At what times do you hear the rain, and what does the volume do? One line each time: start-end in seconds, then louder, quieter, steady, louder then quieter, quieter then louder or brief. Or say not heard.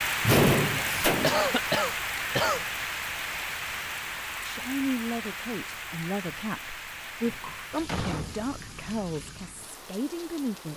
0.0-10.7 quieter.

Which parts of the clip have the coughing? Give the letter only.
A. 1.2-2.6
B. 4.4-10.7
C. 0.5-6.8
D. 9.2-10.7
A.